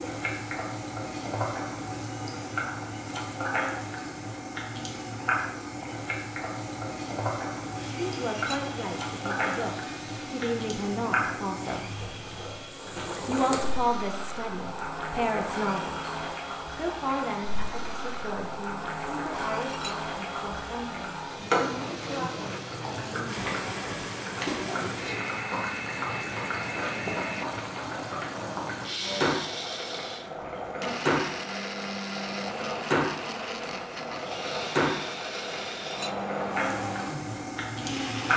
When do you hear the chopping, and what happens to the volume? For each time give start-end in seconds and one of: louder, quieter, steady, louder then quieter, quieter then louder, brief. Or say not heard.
not heard.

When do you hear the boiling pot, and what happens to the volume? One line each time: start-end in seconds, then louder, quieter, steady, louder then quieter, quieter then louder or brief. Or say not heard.
0.0-38.3 steady.